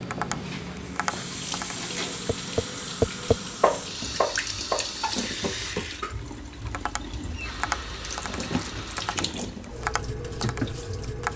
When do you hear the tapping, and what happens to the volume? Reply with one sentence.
The tapping can be heard from 0.0 to 11.3 s, getting louder then quieter.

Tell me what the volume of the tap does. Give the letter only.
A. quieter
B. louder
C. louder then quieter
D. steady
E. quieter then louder
D.